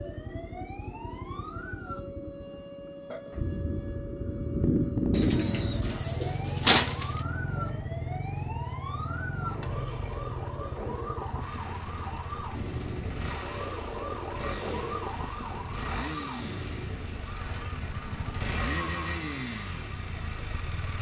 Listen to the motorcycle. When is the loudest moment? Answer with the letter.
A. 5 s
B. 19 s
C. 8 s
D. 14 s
A.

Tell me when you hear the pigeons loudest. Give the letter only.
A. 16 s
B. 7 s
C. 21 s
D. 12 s
B.